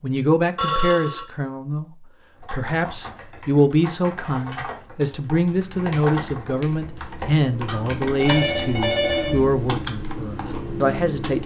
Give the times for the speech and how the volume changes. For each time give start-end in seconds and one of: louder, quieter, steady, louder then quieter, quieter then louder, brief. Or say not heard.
0.0-1.9 brief
2.5-11.4 steady.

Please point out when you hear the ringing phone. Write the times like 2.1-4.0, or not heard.
0.6-1.2, 7.7-9.4.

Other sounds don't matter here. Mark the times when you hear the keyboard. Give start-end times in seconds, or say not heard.
2.4-11.4.